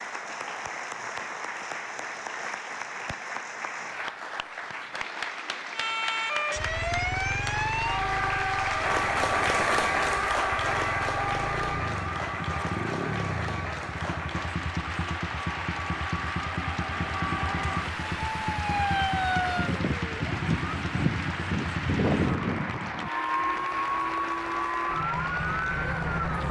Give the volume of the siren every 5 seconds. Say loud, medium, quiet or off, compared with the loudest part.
off, loud, loud, loud, loud, loud.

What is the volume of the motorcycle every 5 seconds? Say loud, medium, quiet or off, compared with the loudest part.
off, medium, loud, loud, loud, off.